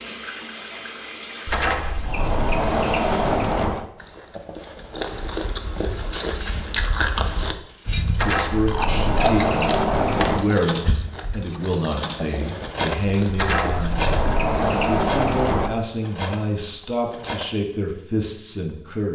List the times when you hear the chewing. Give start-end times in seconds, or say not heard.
4.0-14.3.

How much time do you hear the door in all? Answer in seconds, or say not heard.
7 s.